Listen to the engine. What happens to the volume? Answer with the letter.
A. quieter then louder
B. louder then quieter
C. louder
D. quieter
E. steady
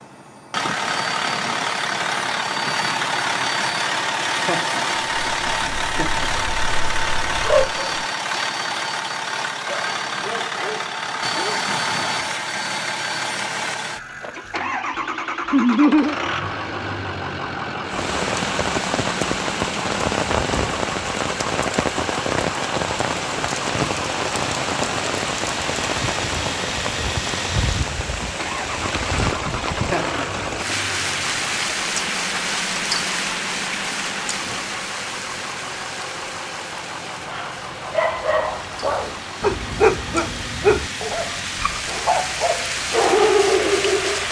D.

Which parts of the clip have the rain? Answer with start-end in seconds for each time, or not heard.
17.9-44.2.